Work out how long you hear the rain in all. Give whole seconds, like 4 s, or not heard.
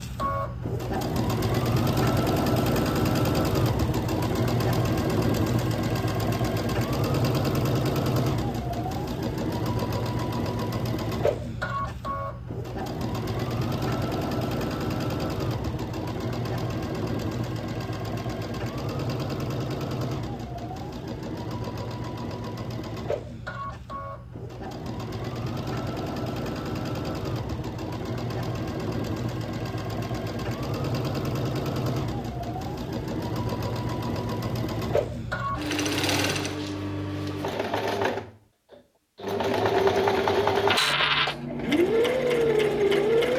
not heard.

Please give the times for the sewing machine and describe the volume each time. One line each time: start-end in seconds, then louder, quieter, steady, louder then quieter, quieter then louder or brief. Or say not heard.
0.0-43.3 quieter then louder.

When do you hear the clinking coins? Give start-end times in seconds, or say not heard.
40.7-41.4.